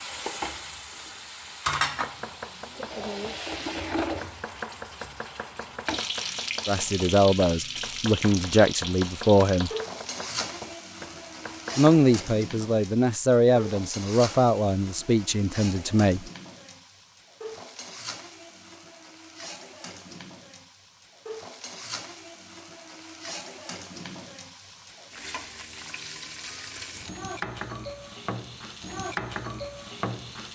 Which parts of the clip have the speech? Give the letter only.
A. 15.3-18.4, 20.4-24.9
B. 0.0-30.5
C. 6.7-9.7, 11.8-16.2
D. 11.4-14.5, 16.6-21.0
C.